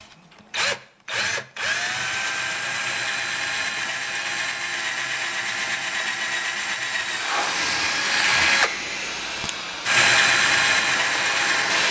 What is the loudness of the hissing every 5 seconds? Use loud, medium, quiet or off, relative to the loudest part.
off, loud, loud.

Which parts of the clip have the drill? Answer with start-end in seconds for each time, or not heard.
0.0-11.8.